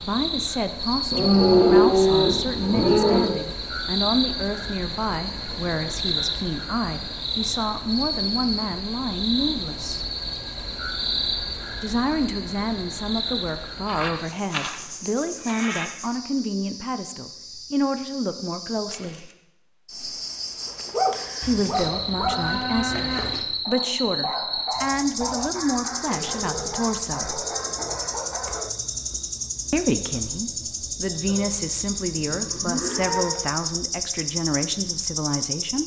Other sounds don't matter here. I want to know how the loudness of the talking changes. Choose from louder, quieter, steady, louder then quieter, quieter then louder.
steady.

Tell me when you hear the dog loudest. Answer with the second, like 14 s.
21 s.